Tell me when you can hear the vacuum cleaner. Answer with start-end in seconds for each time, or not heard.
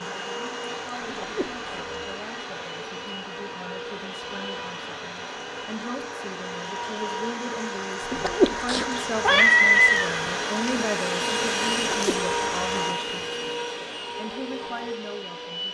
0.0-15.7.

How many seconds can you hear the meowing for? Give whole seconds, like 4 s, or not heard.
2 s.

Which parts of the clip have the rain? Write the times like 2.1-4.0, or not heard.
0.0-12.9.